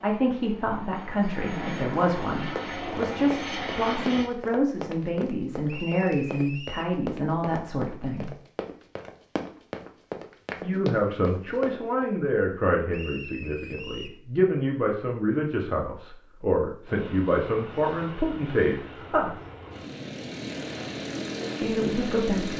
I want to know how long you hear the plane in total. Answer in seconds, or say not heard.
10 s.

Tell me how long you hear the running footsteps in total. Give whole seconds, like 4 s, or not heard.
10 s.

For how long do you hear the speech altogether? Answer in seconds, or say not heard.
18 s.